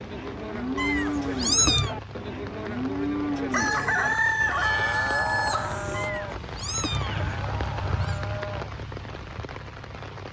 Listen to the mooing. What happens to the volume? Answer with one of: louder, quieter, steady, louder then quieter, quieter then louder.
quieter.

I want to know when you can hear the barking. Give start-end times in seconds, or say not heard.
not heard.